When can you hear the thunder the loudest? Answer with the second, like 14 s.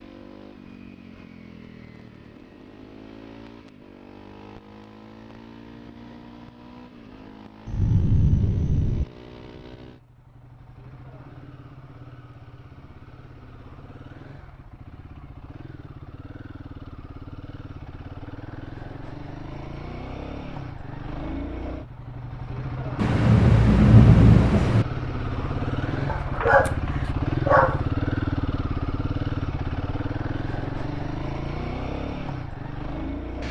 24 s.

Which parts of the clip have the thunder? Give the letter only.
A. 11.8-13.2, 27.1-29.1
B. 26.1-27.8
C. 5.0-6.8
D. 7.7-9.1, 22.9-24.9
D.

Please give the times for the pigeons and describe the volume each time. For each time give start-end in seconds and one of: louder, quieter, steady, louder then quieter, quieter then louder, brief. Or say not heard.
not heard.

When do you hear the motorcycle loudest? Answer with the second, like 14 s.
28 s.